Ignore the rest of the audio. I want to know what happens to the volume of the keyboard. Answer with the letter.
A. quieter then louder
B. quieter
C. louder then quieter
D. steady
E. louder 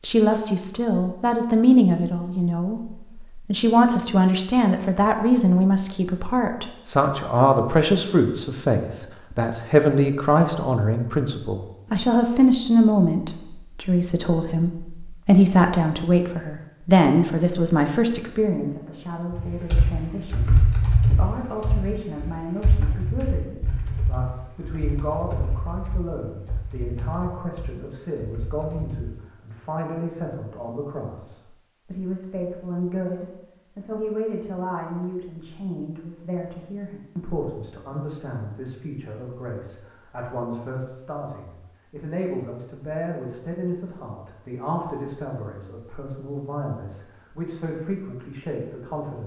B.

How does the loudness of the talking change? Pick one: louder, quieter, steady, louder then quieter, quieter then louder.
quieter.